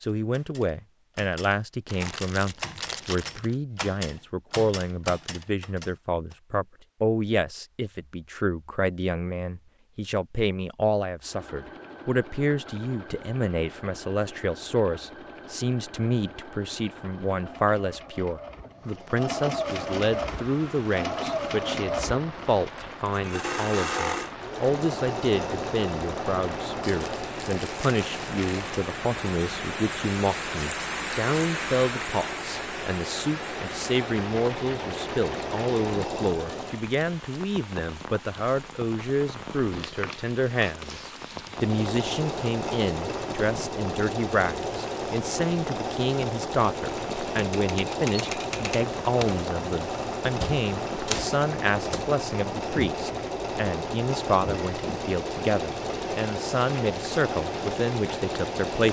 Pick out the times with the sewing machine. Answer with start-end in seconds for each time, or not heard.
11.2-36.8, 41.5-58.8.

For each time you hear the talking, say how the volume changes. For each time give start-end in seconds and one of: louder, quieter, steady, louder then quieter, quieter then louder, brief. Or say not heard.
0.0-58.8 steady.